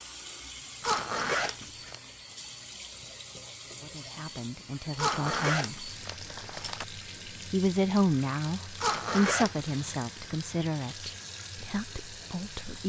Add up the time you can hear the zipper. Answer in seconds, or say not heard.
4 s.